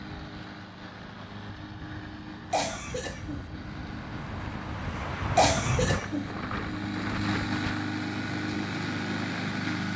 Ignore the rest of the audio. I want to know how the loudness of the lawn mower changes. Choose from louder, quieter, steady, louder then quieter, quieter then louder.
louder.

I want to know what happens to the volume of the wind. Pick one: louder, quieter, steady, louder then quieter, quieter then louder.
louder then quieter.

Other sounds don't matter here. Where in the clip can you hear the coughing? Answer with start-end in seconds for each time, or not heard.
2.5-3.5, 5.3-6.3.